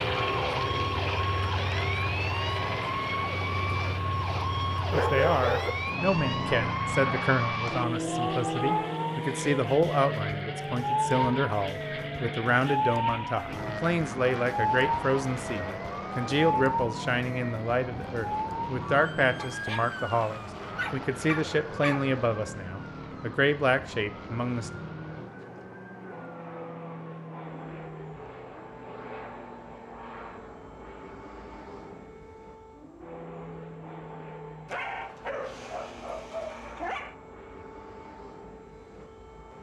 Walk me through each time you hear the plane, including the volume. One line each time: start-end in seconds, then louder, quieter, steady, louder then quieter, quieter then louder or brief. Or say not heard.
0.0-39.5 quieter.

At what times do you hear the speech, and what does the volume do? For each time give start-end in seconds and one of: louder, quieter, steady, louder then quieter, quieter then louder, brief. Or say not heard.
4.9-24.7 steady.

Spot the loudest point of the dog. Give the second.
5 s.